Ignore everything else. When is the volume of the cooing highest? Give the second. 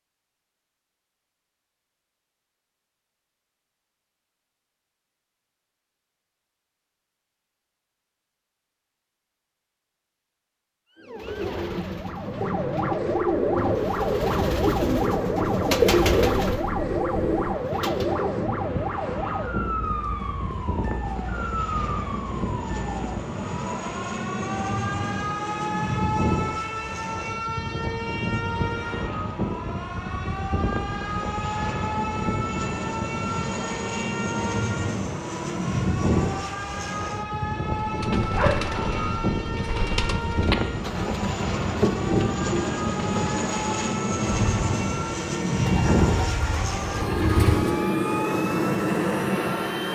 16 s.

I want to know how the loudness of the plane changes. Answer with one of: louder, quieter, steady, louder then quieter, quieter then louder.
louder.